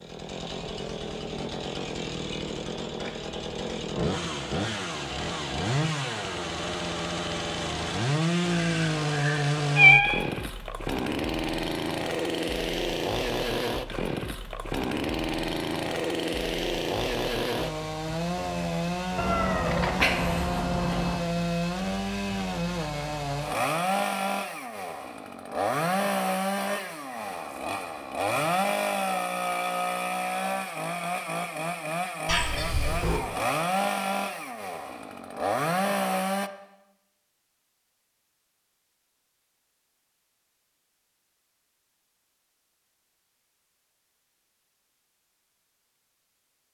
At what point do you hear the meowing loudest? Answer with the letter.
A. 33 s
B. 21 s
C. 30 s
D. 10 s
D.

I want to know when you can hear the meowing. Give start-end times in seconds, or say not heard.
8.5-10.2, 19.1-21.2, 32.2-33.2.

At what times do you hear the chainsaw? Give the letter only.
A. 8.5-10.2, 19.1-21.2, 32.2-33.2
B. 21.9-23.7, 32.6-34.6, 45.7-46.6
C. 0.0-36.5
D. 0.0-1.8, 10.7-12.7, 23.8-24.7
C.